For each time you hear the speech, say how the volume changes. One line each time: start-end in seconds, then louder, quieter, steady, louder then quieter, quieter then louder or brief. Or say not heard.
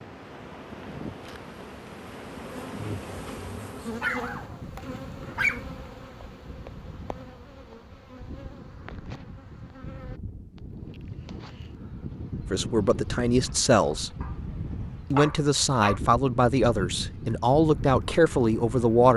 12.5-14.1 brief
15.1-19.1 quieter then louder.